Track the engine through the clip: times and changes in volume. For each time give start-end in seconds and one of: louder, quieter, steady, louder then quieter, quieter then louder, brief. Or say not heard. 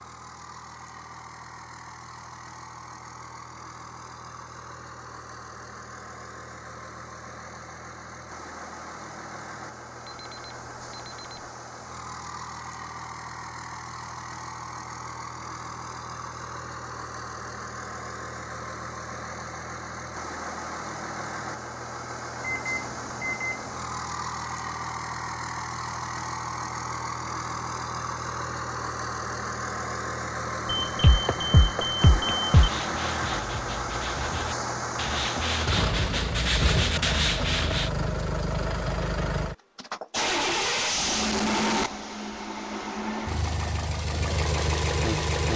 0.0-45.5 louder.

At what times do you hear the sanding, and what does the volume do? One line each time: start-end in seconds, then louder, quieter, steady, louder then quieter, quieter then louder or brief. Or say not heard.
32.5-37.9 louder.